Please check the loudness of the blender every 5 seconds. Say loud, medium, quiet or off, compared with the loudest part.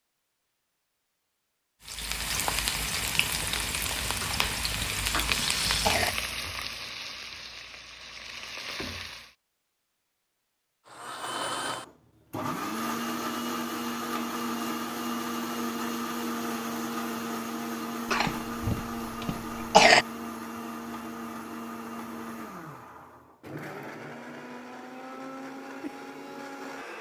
off, off, loud, loud, medium, medium.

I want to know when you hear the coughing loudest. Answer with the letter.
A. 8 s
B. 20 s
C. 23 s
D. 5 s
B.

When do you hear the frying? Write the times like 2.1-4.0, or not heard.
1.8-9.3.